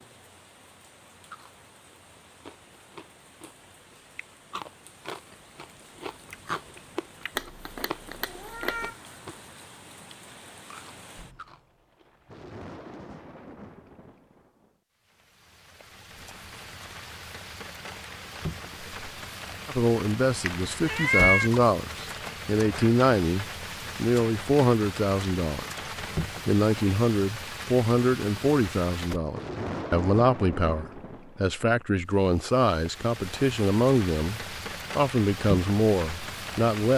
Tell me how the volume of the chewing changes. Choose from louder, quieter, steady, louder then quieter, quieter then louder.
louder then quieter.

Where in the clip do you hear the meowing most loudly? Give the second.
21 s.